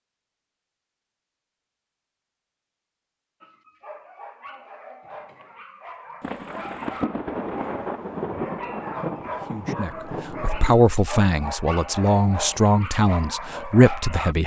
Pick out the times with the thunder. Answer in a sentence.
The thunder can be heard from 6.2 to 10.8 s.